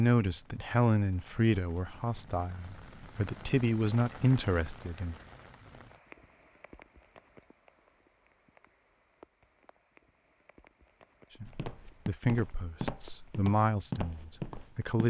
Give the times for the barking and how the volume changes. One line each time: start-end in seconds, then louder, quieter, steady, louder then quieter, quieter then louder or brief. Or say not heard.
not heard.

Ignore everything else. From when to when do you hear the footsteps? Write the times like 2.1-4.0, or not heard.
11.4-14.9.